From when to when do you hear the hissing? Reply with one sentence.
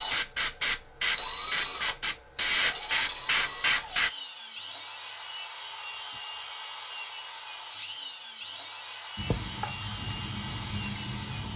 You can hear the hissing from 0.0 to 4.1 s and from 9.2 to 11.5 s.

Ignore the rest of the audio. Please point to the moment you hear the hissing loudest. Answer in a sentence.
The volume of the hissing peaks at 3 seconds.